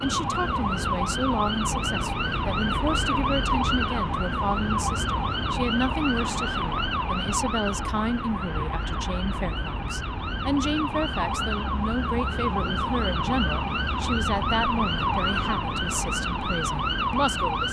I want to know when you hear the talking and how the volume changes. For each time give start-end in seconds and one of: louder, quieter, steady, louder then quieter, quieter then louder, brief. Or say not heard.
0.0-17.6 steady.